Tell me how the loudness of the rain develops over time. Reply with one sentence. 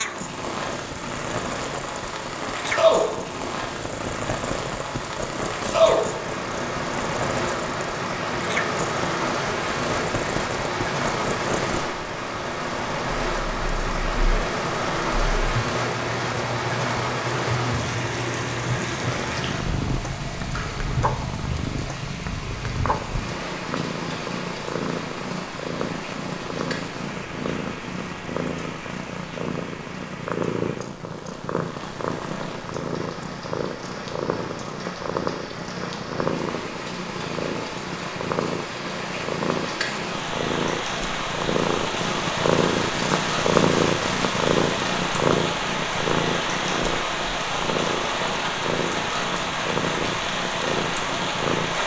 The loudness of the rain goes down, then up.